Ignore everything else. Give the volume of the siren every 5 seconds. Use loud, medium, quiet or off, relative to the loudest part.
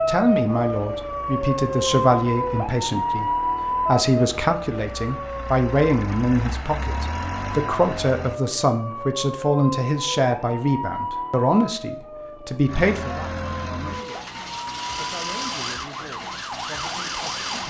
loud, medium, medium, medium.